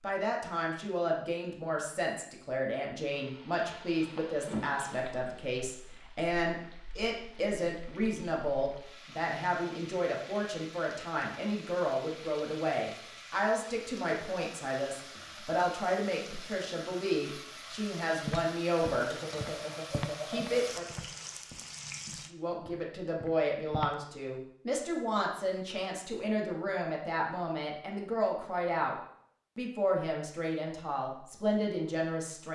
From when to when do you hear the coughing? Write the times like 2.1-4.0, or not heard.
4.5-5.4, 18.9-20.8.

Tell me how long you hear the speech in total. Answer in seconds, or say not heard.
29 s.